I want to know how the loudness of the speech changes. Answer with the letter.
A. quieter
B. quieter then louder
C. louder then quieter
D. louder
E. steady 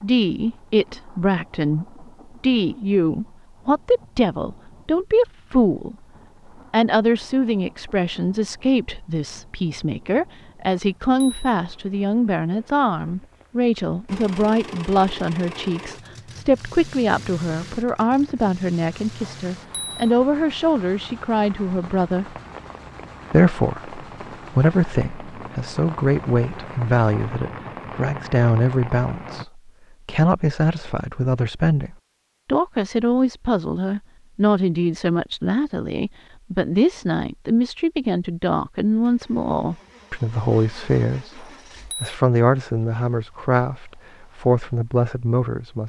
E.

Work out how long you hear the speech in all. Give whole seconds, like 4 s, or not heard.
44 s.